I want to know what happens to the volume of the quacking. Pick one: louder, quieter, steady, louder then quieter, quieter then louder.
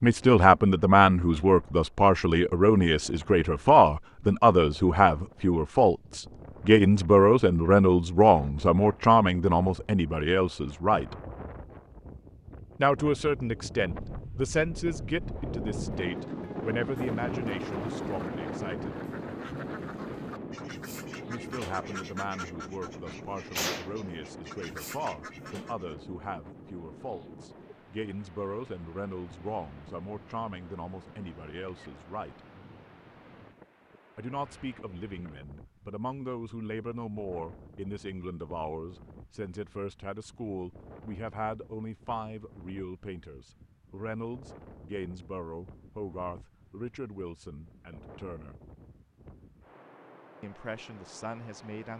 louder then quieter.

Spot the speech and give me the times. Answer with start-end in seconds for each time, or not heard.
0.0-11.2, 12.8-18.9, 21.2-32.4, 34.1-48.5, 50.4-51.9.